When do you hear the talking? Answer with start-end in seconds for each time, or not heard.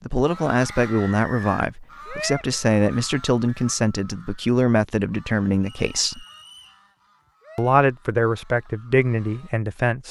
0.0-6.2, 7.5-10.0.